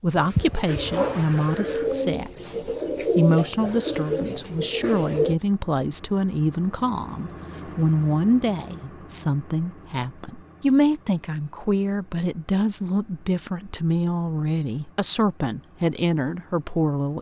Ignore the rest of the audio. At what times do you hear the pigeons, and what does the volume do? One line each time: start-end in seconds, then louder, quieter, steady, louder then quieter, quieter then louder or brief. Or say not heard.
0.1-5.3 steady.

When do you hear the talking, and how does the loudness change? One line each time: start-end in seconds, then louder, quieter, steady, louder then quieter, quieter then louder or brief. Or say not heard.
0.0-17.1 steady.